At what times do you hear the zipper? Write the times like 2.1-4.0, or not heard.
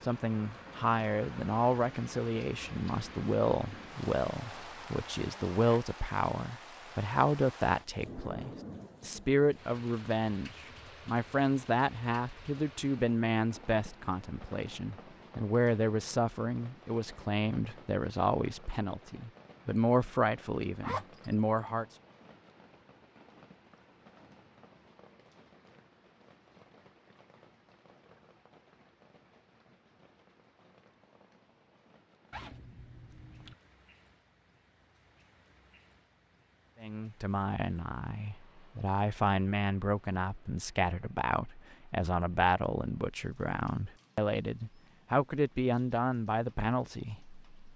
4.3-5.8, 20.8-21.4, 32.3-33.5.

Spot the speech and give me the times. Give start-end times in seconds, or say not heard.
0.0-21.9, 36.8-47.5.